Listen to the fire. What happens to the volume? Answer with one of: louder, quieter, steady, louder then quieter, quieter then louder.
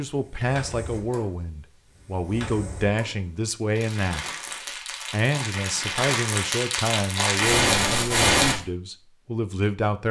louder.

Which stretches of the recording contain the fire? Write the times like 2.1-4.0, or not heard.
0.0-8.6.